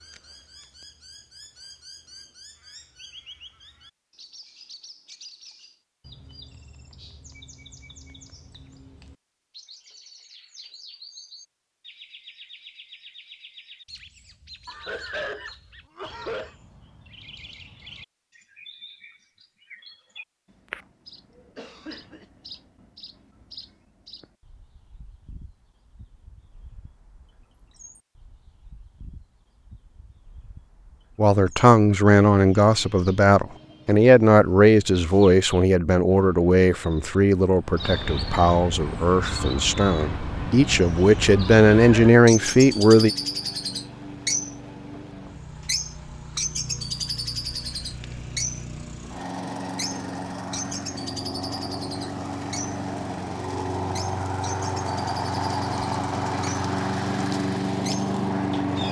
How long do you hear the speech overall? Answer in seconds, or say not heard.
12 s.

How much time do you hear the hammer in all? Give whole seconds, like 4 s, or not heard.
not heard.